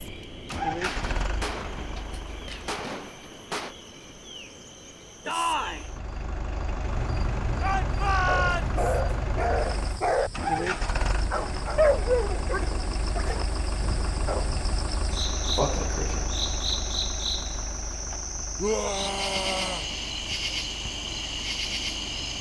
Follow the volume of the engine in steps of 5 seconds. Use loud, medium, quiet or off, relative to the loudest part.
loud, loud, loud, medium, quiet.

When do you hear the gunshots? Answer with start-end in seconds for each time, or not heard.
0.8-3.8.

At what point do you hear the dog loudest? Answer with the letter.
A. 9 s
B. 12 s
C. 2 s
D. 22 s
B.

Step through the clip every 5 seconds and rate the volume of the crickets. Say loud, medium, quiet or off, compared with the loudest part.
quiet, medium, medium, loud, loud.